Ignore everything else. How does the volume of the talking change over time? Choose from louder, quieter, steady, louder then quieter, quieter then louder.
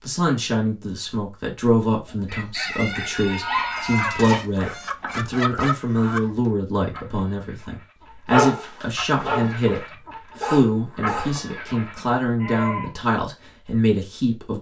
steady.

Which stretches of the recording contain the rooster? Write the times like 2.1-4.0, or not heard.
2.0-6.3.